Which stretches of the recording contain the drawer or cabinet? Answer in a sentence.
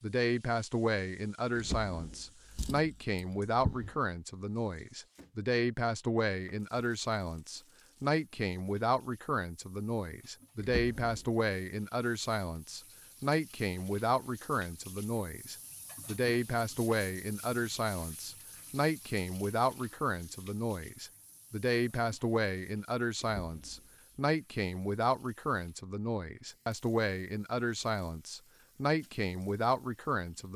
You can hear the drawer or cabinet from 1.6 to 3.9 s, from 10.6 to 11.2 s and from 23.2 to 23.9 s.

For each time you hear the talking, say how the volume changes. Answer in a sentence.
The talking can be heard from 0.0 to 30.5 s, at a steady volume.